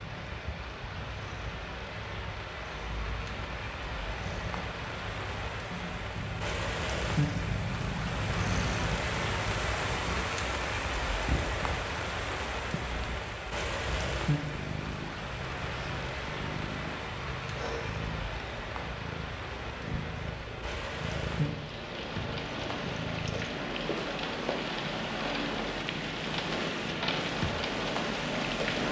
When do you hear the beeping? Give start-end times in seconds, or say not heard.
not heard.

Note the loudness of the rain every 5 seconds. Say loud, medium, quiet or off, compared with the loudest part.
medium, loud, loud, medium, loud, loud.